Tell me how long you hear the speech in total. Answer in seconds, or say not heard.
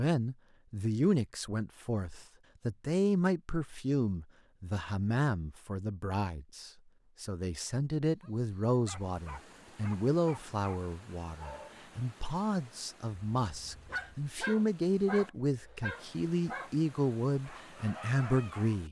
19 s.